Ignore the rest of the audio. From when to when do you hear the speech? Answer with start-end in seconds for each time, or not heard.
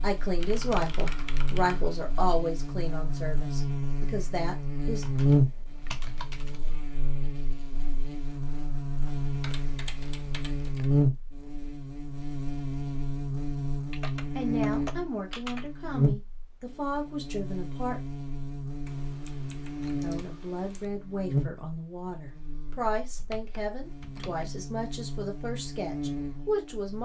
0.0-5.0, 14.3-18.0, 20.0-27.0.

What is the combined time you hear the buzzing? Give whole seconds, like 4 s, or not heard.
27 s.